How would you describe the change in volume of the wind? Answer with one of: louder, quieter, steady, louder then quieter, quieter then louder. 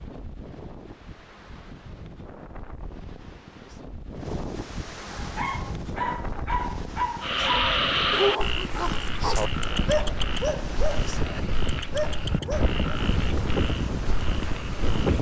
louder.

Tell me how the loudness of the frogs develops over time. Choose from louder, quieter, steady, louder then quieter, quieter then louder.
quieter.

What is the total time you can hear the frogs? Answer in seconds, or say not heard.
8 s.